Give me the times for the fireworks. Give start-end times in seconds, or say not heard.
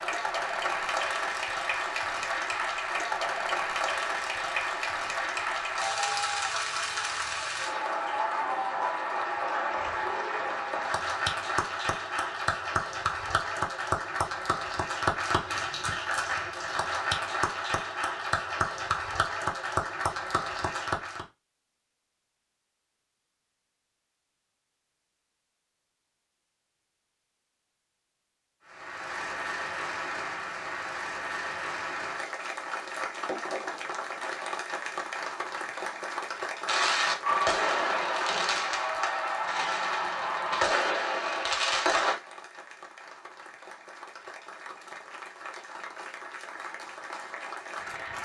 36.6-42.1.